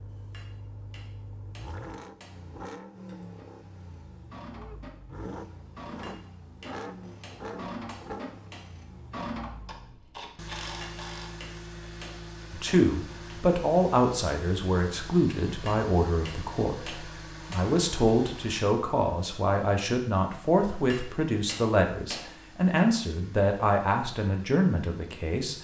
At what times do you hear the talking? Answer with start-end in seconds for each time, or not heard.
12.5-25.5.